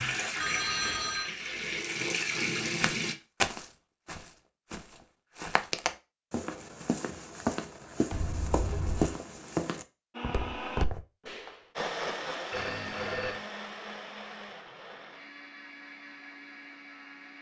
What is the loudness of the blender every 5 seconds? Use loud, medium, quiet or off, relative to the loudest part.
off, off, loud, medium.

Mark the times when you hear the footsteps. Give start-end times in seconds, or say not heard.
2.8-11.0.